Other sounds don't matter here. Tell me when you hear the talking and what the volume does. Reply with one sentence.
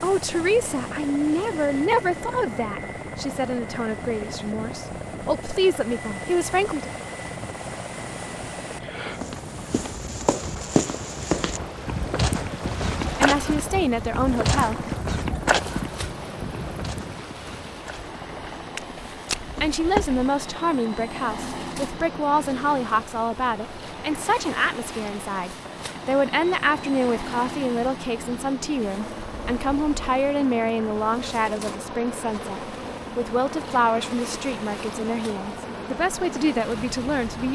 The talking can be heard from 0.0 to 6.9 s, getting quieter then louder; briefly from 13.2 to 14.8 s; and from 19.6 to 37.4 s, at a steady volume.